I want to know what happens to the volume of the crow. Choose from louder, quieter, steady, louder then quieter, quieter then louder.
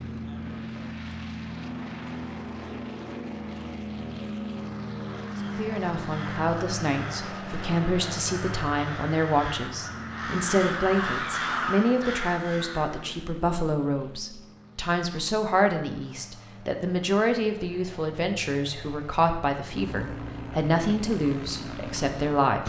louder.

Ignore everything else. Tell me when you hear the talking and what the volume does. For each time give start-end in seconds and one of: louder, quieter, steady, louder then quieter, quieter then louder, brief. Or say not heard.
5.5-22.6 steady.